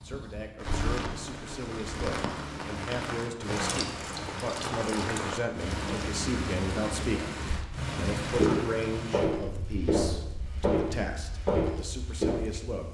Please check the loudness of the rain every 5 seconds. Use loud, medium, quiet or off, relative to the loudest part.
loud, loud, quiet.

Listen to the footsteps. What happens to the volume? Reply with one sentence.
The loudness of the footsteps stays about the same.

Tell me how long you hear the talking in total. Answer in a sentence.
You can hear the talking for 13 seconds altogether.